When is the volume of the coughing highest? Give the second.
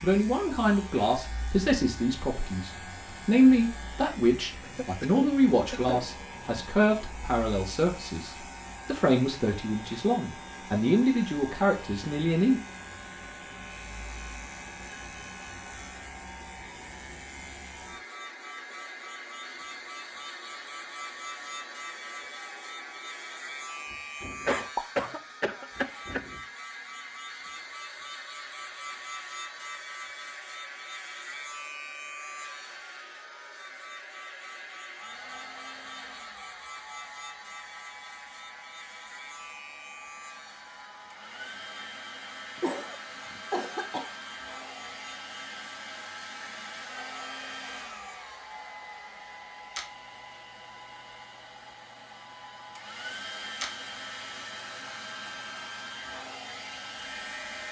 25 s.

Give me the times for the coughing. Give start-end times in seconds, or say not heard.
4.6-6.0, 24.4-26.2, 42.6-44.1.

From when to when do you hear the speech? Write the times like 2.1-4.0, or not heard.
0.0-12.6.